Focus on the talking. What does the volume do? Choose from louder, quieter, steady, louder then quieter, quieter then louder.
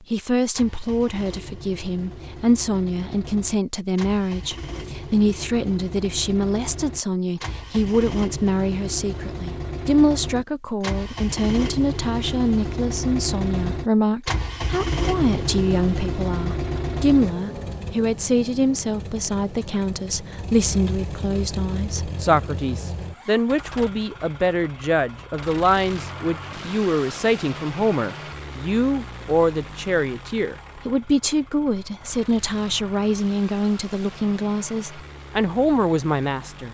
steady.